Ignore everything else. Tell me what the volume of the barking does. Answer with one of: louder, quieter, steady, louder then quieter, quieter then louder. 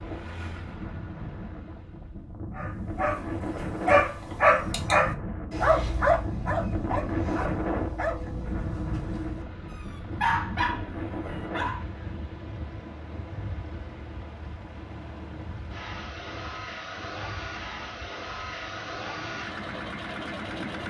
quieter then louder.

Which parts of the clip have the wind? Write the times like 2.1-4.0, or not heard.
0.0-20.8.